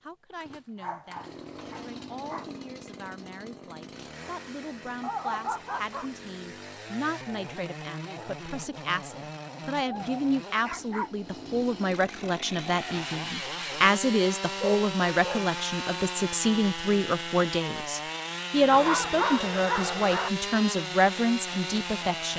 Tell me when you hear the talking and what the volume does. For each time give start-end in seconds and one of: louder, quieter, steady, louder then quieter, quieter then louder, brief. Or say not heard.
0.0-22.3 louder.